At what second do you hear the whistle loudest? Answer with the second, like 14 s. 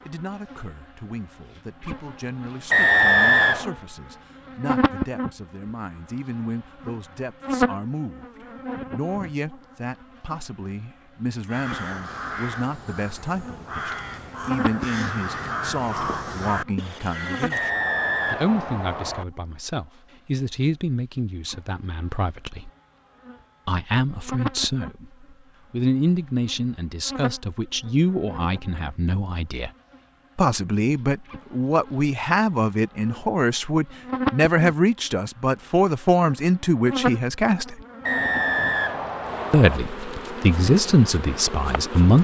3 s.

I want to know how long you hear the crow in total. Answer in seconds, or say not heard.
6 s.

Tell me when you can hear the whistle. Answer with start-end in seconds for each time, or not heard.
2.7-3.7, 17.5-19.2, 38.0-39.8.